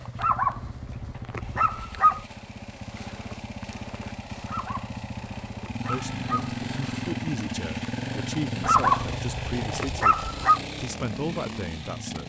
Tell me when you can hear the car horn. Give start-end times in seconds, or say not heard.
not heard.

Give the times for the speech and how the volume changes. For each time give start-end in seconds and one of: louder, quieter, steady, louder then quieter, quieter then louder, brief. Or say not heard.
5.8-12.2 steady.